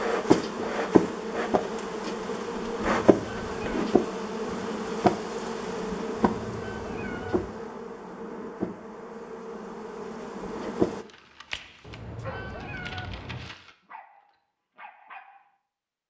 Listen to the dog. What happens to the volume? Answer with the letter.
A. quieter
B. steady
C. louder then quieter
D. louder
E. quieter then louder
A.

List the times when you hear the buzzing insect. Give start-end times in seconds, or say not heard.
0.0-11.1.